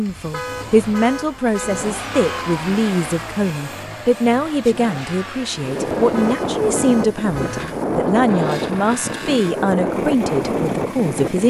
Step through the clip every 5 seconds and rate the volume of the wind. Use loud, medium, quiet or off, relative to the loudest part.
off, loud, loud.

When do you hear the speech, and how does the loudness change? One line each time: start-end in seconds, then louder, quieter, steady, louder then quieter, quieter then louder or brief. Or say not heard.
0.0-11.4 steady.